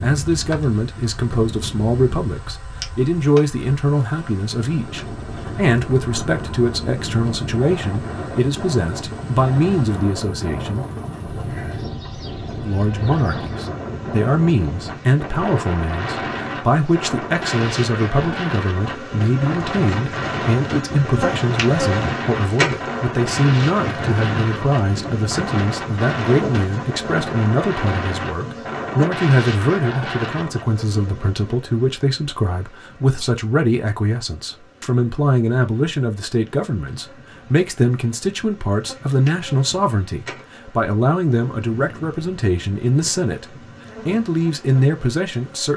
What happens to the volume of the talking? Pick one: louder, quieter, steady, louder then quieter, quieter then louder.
steady.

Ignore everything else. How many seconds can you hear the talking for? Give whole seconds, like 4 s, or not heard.
44 s.